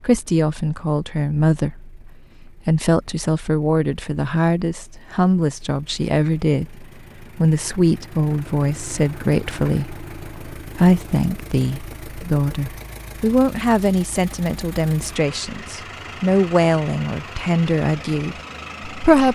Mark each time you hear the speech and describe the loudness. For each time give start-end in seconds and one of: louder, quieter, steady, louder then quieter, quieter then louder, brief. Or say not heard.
0.0-19.3 steady.